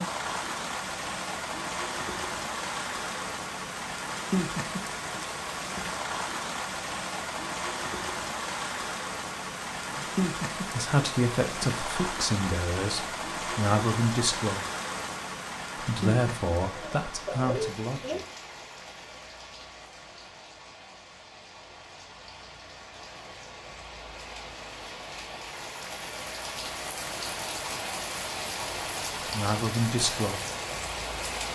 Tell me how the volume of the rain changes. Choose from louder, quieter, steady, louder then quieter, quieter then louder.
quieter then louder.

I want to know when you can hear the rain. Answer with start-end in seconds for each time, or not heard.
0.0-31.5.